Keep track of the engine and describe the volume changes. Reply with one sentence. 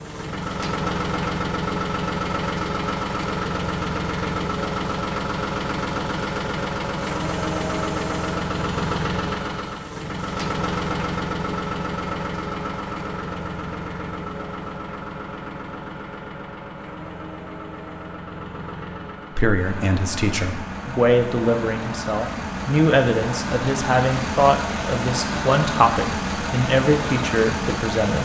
The loudness of the engine goes down, then up.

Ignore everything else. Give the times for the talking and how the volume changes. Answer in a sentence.
The talking can be heard from 19.4 to 28.1 s, at a steady volume.